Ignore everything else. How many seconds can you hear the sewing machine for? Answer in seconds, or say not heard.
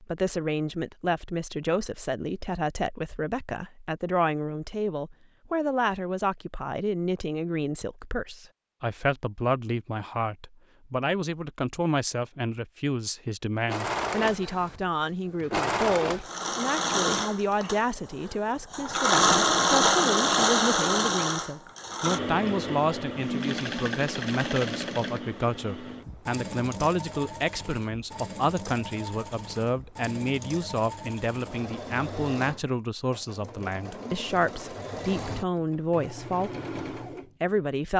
24 s.